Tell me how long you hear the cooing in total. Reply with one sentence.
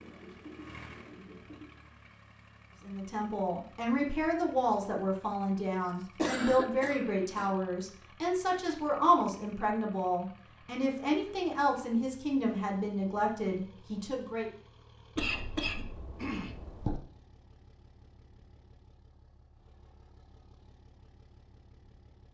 The cooing can be heard for 2 seconds in total.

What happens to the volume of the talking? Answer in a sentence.
The loudness of the talking stays about the same.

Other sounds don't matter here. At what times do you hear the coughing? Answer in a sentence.
The coughing can be heard from 5.8 to 7.5 s and from 15.2 to 17.0 s.